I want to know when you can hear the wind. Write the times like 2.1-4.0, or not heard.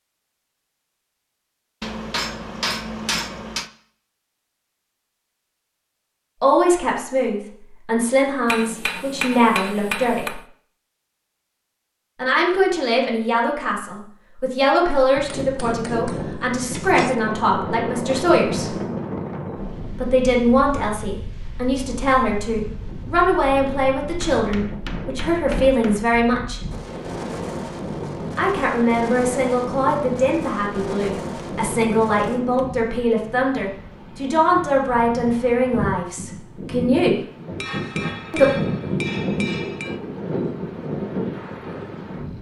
15.4-42.3.